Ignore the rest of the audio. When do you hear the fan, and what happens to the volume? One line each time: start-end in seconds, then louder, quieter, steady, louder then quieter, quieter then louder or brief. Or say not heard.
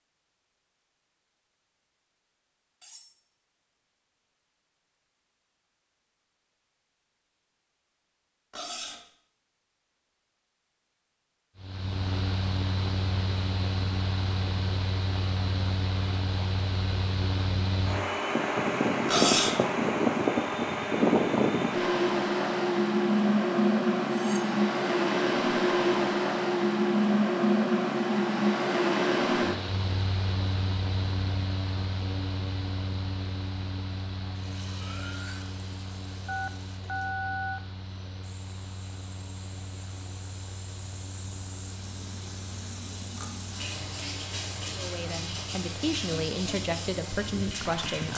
11.6-48.1 louder then quieter.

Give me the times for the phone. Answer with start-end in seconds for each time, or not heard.
36.2-37.6.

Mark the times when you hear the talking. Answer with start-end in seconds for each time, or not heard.
44.8-48.1.